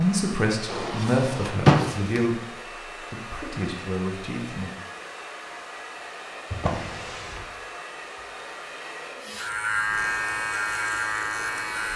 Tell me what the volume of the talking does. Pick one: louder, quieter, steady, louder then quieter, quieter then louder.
quieter then louder.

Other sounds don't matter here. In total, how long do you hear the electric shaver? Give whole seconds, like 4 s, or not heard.
3 s.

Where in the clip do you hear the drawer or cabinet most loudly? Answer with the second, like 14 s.
2 s.